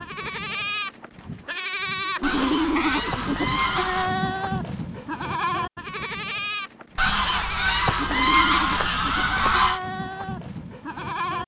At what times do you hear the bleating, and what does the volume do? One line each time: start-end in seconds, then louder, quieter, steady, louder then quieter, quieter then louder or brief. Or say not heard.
0.0-11.4 quieter.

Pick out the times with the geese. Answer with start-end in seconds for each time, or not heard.
2.2-4.1, 7.0-9.8.